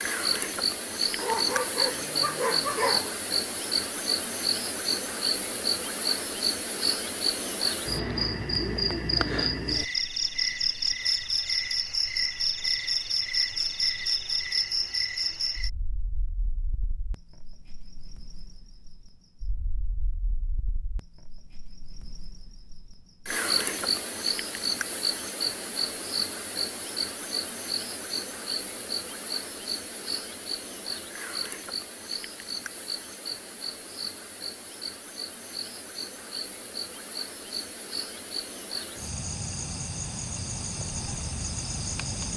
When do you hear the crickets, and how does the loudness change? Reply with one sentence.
The crickets can be heard from 0.0 to 42.3 s, getting quieter.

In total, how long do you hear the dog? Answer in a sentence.
The dog can be heard for 2 seconds in total.